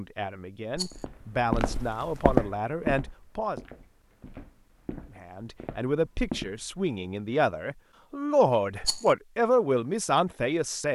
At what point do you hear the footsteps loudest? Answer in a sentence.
The loudest moment of the footsteps is at 2 seconds.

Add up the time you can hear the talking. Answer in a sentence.
You can hear the talking for 9 seconds altogether.